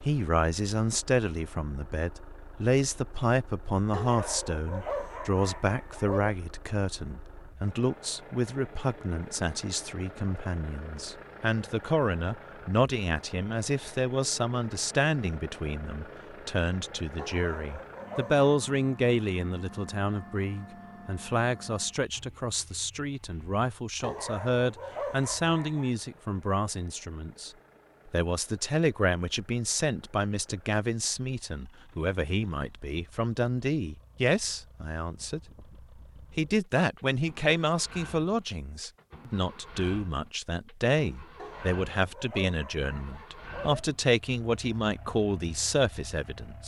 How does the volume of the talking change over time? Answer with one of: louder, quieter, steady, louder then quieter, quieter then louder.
steady.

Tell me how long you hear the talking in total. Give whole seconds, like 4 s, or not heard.
46 s.